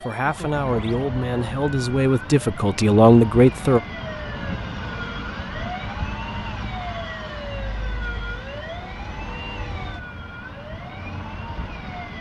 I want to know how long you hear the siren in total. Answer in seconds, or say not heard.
12 s.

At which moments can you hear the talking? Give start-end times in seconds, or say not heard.
0.0-3.8.